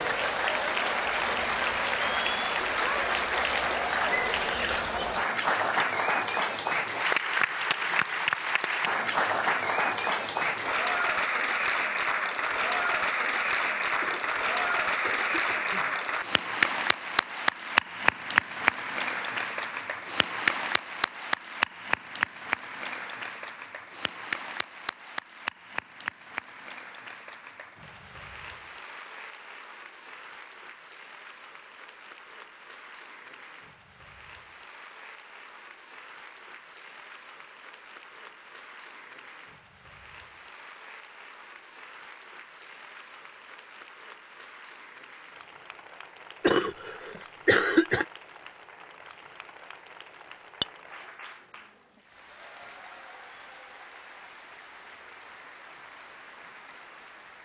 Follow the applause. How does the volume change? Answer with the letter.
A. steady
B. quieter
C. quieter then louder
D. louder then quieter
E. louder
B.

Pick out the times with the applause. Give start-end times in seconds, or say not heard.
0.0-57.4.